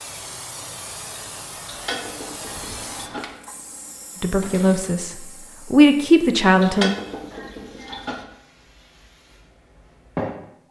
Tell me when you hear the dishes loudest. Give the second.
7 s.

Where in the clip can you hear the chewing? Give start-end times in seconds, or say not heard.
not heard.